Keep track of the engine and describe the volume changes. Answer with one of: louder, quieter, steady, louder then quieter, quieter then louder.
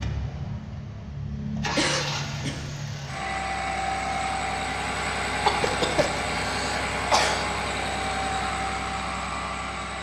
steady.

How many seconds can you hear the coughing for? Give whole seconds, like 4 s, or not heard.
3 s.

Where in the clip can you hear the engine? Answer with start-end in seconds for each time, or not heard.
0.0-9.9.